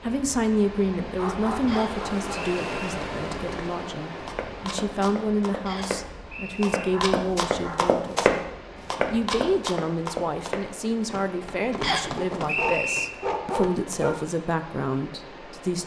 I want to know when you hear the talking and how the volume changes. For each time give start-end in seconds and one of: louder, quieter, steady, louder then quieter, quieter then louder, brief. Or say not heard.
0.0-15.8 steady.